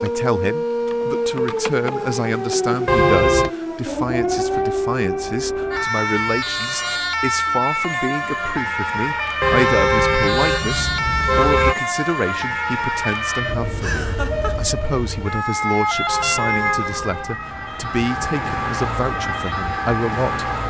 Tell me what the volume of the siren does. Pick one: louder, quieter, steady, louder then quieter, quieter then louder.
steady.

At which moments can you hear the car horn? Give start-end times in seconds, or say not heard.
2.9-3.5, 9.4-11.8, 16.1-17.6.